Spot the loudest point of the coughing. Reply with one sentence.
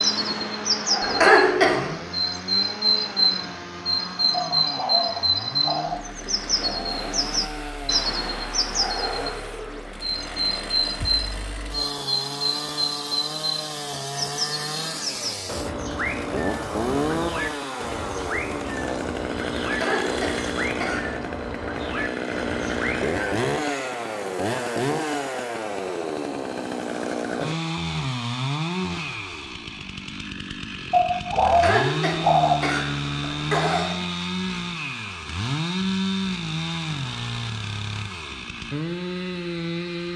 The volume of the coughing peaks at 1 second.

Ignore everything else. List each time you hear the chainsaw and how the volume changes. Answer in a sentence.
The chainsaw can be heard from 0.0 to 40.1 s, getting louder.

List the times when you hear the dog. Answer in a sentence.
You can hear the dog from 4.5 to 6.2 s and from 30.9 to 32.7 s.